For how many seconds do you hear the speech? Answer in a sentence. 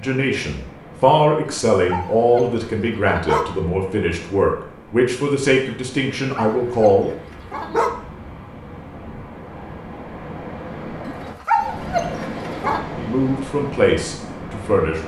The speech can be heard for 9 seconds in total.